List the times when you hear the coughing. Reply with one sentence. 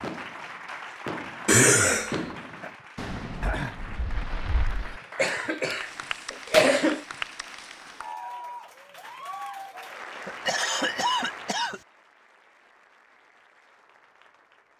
The coughing can be heard from 1.4 to 2.2 s, from 5.2 to 7.0 s and from 10.2 to 11.8 s.